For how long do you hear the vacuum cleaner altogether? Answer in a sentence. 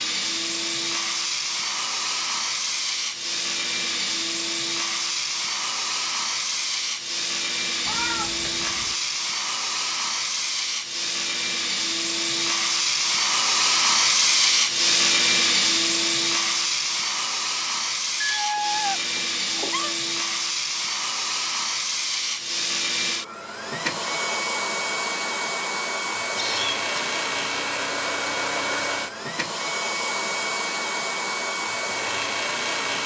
You can hear the vacuum cleaner for 33 seconds altogether.